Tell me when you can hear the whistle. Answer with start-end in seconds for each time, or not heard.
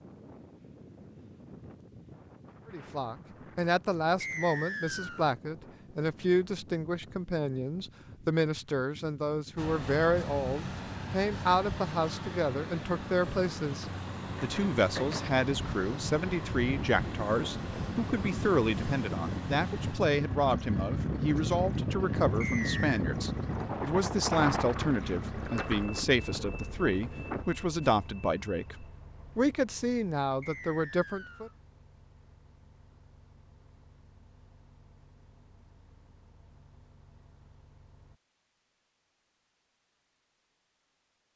4.2-5.3, 22.4-23.0, 30.4-31.6.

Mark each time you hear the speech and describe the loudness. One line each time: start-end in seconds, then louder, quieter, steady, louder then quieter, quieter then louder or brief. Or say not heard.
2.6-31.5 steady.